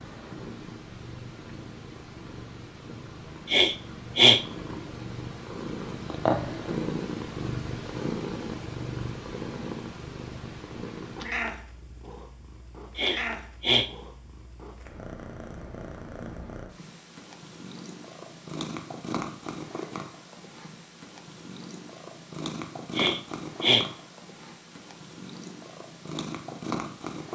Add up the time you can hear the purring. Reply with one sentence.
The purring can be heard for 27 seconds in total.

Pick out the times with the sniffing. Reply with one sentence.
The sniffing can be heard from 3.5 to 4.4 s, from 12.9 to 13.9 s and from 22.9 to 23.9 s.